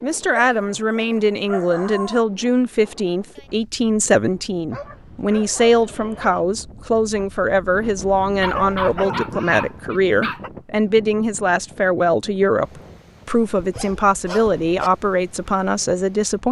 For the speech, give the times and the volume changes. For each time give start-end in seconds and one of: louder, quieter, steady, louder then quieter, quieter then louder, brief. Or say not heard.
0.0-16.4 steady.